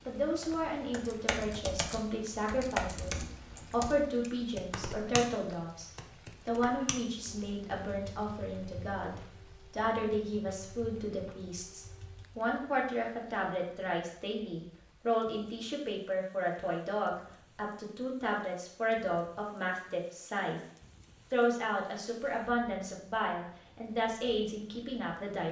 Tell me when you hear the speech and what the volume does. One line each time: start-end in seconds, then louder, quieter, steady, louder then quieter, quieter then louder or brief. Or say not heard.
0.1-20.6 steady
21.3-25.4 steady.